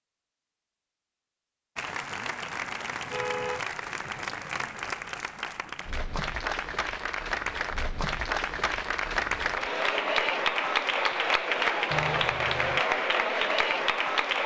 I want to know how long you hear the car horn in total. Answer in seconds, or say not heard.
2 s.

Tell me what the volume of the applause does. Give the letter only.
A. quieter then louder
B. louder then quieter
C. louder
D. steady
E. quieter
C.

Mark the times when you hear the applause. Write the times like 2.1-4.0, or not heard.
1.8-14.4.